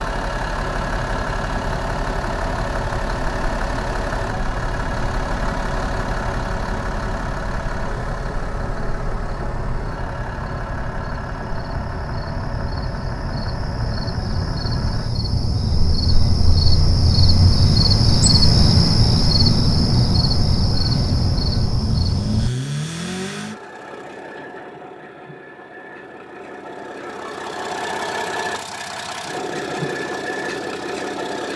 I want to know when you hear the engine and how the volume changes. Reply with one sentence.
The engine can be heard from 0.0 to 15.2 s, getting quieter; and from 20.7 to 31.5 s, getting quieter then louder.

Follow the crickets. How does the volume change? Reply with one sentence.
The loudness of the crickets goes up.